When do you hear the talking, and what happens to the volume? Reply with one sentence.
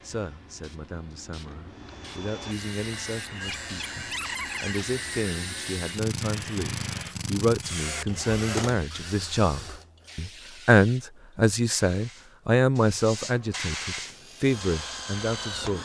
The talking can be heard from 0.0 to 15.7 s, getting louder.